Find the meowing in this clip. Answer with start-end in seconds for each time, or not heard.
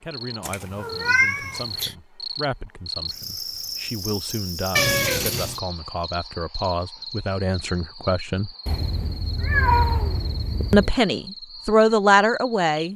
0.4-1.9, 4.8-5.6, 8.7-10.9.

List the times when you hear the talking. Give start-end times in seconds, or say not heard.
0.0-8.5, 10.7-12.9.